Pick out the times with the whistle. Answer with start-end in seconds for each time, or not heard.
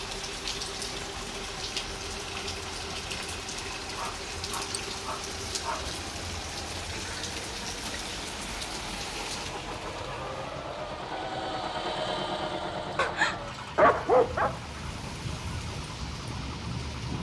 not heard.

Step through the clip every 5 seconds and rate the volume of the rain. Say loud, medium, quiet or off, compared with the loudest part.
loud, loud, medium, loud.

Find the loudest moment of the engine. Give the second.
12 s.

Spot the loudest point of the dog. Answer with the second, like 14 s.
14 s.